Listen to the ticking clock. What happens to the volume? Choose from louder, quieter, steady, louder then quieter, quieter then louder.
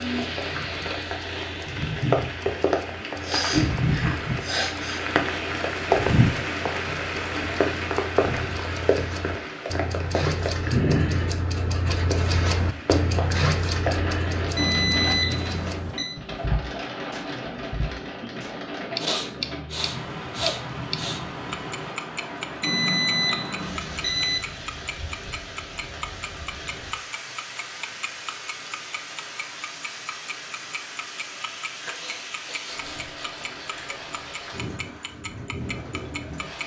louder then quieter.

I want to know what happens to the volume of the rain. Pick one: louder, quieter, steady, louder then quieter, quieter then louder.
quieter.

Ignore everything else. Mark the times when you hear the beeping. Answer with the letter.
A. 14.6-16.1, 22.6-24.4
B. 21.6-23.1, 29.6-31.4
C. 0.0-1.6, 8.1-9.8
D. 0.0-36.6
A.